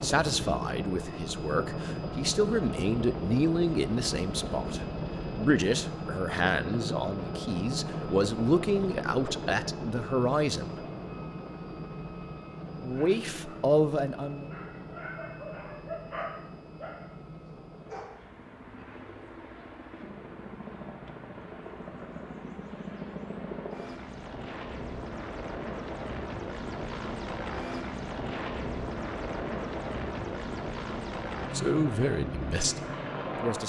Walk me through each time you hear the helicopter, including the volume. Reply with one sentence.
The helicopter can be heard from 0.0 to 33.6 s, getting quieter then louder.